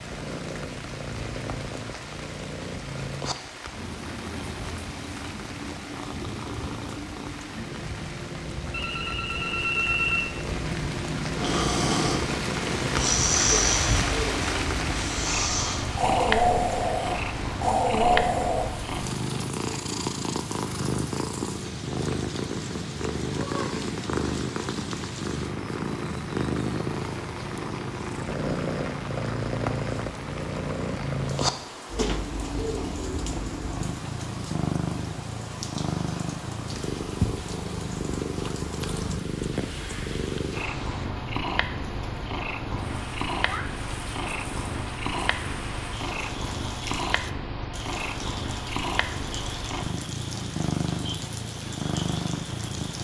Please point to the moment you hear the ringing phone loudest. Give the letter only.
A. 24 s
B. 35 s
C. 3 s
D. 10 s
D.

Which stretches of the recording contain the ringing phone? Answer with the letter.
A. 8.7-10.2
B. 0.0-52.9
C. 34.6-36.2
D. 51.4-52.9
A.